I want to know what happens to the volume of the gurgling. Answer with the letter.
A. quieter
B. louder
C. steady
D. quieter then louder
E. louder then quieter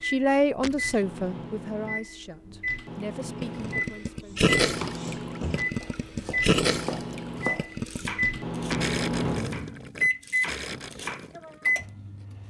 A.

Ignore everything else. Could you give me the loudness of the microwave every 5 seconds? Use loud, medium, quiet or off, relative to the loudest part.
medium, loud, loud.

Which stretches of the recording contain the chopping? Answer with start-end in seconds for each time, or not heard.
4.2-11.3.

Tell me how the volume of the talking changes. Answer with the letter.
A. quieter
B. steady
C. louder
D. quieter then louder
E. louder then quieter
A.